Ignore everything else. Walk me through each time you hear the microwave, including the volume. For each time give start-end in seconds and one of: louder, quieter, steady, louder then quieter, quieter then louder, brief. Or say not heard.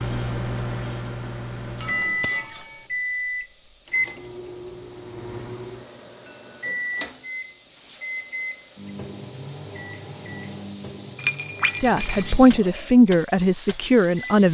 0.0-14.4 quieter.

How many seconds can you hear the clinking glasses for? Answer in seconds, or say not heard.
3 s.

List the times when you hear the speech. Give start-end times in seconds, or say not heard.
11.8-14.4.